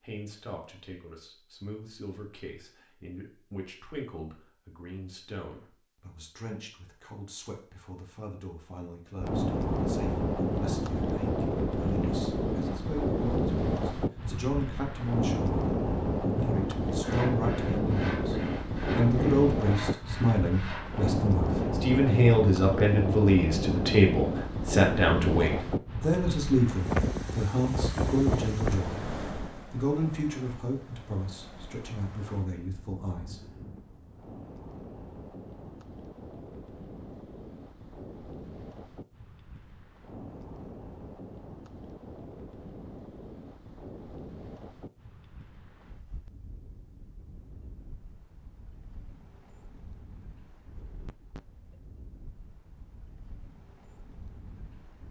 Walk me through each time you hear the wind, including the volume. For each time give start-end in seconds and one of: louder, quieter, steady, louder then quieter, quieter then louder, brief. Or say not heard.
9.2-55.0 quieter.